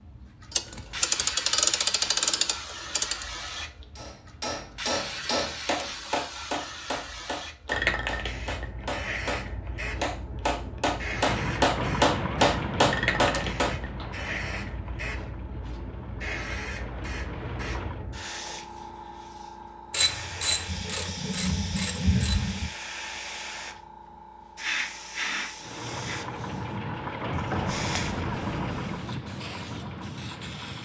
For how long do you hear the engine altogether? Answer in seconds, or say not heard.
12 s.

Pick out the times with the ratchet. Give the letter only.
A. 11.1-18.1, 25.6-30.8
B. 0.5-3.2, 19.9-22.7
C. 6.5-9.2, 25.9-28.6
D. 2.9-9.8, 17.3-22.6
B.